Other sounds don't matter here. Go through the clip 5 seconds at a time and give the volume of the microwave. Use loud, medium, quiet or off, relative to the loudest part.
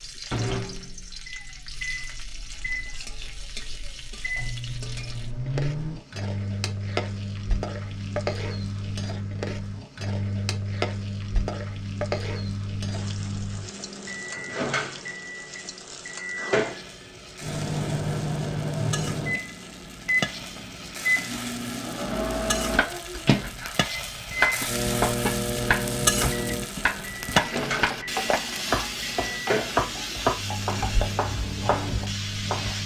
medium, medium, medium, loud, loud, loud, medium.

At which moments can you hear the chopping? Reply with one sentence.
The chopping can be heard from 22.7 to 32.8 s.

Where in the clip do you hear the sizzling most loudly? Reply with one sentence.
The volume of the sizzling peaks at 28 seconds.